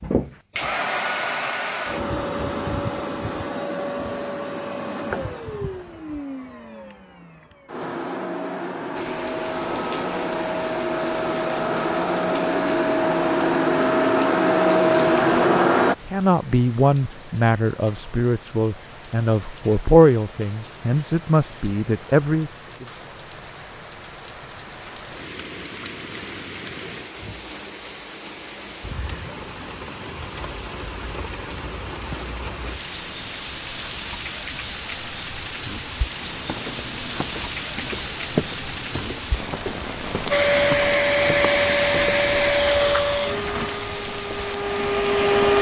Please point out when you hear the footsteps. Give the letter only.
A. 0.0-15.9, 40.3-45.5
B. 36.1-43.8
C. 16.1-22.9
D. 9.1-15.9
B.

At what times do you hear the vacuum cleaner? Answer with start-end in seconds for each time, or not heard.
0.0-15.9, 40.3-45.5.